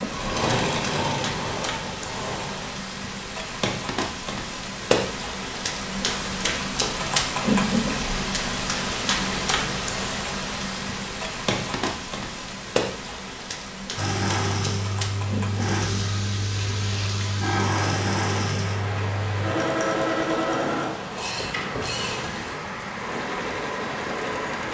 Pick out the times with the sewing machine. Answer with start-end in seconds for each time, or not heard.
0.0-2.8, 13.9-24.6.